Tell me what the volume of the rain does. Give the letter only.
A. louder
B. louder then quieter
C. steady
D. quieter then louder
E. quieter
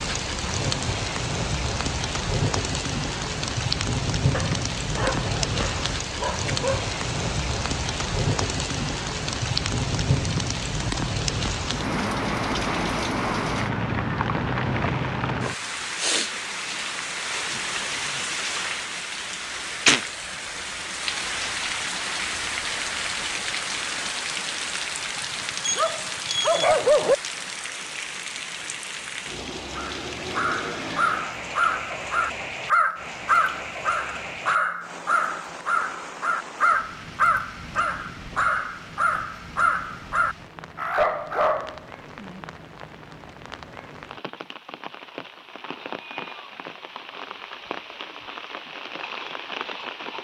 E.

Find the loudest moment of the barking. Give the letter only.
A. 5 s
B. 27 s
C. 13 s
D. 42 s
B.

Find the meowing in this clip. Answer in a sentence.
The meowing can't be heard in this clip.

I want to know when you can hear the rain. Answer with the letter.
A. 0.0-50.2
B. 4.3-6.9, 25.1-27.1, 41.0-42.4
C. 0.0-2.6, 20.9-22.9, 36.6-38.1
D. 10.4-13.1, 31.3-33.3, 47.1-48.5
A.